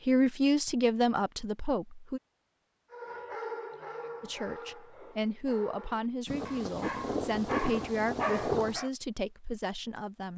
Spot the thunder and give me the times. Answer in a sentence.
The thunder can be heard from 6.2 to 8.8 s.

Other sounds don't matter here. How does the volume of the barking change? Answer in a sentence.
The volume of the barking goes down, then up.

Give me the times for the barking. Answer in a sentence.
The barking can be heard from 2.9 to 8.9 s.